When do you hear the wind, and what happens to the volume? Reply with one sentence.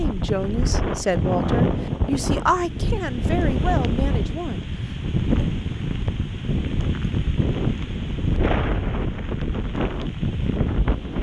You can hear the wind from 0.0 to 11.1 s, at a steady volume.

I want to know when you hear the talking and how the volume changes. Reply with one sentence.
The talking can be heard from 0.0 to 5.5 s, getting quieter.